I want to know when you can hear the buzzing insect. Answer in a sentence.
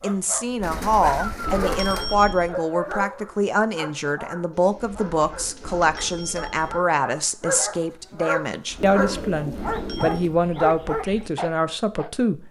The buzzing insect can't be heard in this clip.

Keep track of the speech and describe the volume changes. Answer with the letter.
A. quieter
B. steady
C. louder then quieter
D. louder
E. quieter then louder
B.